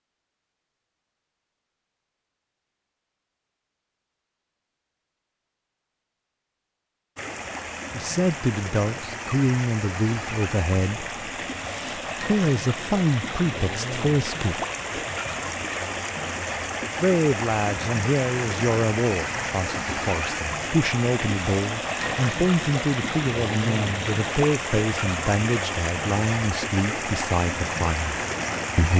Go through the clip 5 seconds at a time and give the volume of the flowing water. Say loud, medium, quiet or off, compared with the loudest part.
off, medium, loud, loud, loud, loud.